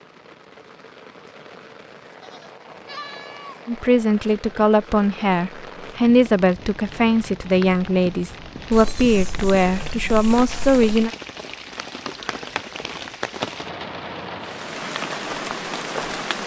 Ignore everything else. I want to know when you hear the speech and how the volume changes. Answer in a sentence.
The speech can be heard from 3.6 to 11.1 s, at a steady volume.